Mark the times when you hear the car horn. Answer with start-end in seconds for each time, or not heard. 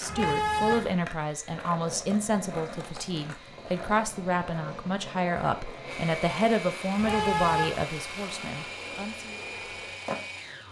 0.1-0.9, 7.0-7.8.